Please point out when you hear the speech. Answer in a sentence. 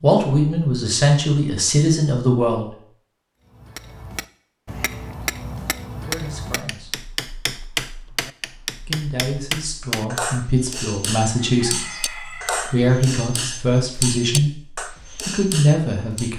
The speech can be heard from 0.0 to 2.6 s, from 6.0 to 7.0 s and from 8.8 to 16.3 s.